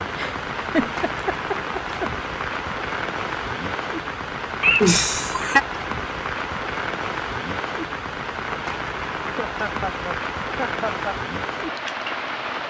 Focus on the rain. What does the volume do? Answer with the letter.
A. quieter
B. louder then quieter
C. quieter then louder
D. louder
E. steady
E.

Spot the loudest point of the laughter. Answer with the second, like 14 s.
5 s.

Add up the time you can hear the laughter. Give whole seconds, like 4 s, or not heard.
5 s.